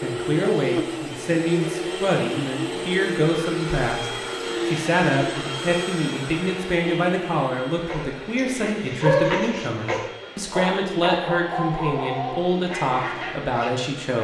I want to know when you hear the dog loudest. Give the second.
9 s.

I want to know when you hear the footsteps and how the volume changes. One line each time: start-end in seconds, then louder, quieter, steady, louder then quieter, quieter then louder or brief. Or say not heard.
not heard.